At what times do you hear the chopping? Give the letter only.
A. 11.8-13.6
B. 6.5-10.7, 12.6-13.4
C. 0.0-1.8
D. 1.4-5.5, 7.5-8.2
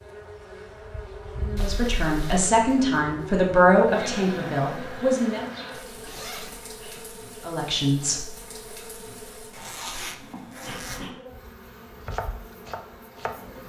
A.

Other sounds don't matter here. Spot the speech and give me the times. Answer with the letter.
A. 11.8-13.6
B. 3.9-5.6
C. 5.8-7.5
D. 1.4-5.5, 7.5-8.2
D.